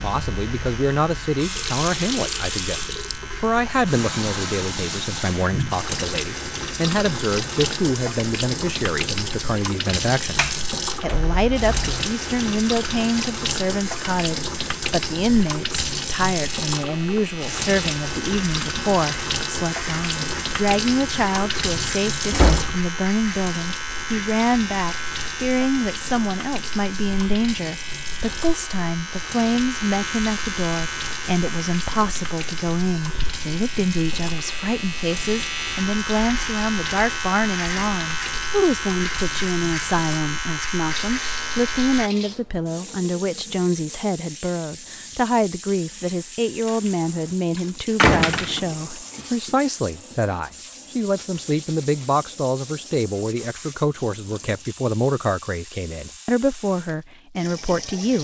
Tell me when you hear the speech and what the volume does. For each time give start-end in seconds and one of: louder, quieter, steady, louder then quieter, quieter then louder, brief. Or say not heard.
0.0-58.1 steady.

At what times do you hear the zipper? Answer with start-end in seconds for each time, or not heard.
not heard.